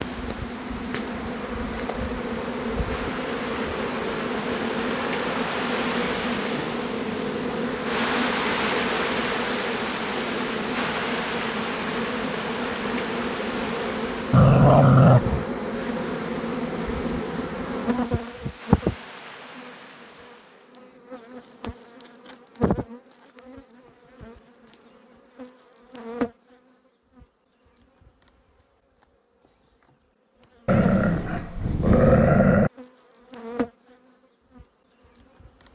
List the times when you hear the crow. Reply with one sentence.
You can't hear the crow here.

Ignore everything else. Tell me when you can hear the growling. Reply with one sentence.
The growling can be heard from 14.3 to 15.4 s and from 30.6 to 32.7 s.